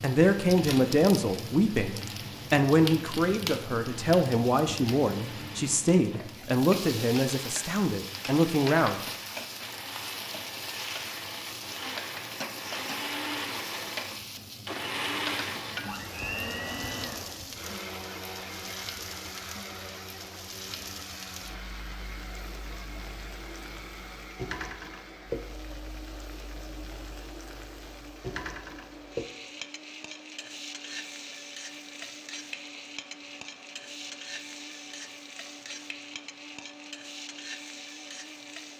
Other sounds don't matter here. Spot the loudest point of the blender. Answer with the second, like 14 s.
15 s.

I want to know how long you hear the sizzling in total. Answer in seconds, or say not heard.
39 s.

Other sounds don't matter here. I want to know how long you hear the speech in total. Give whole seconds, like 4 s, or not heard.
9 s.